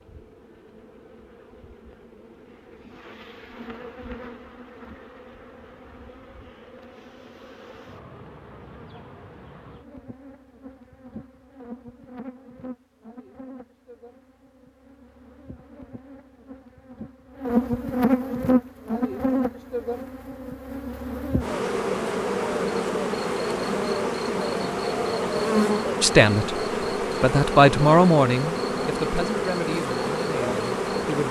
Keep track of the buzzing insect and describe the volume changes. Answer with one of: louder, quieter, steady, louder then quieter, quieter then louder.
louder.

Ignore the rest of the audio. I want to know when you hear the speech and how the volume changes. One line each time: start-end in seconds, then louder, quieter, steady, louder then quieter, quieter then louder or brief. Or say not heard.
26.0-31.2 louder then quieter.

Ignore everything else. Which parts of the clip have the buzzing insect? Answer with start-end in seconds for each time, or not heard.
0.0-31.2.